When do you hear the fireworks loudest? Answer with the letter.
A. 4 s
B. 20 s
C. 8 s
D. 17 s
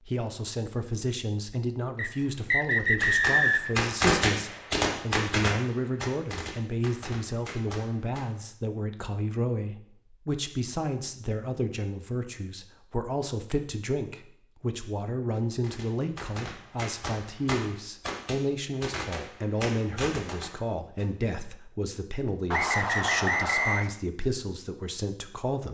A.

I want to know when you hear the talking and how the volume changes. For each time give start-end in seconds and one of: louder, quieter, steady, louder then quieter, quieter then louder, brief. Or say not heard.
0.1-25.6 steady.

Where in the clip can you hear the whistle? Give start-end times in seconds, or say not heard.
1.9-3.8, 22.5-23.9.